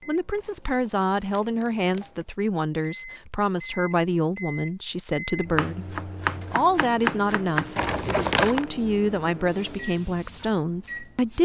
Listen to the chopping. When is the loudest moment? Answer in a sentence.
The volume of the chopping peaks at 7 seconds.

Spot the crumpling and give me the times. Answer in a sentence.
The crumpling can be heard from 0.3 to 2.2 s and from 7.8 to 8.7 s.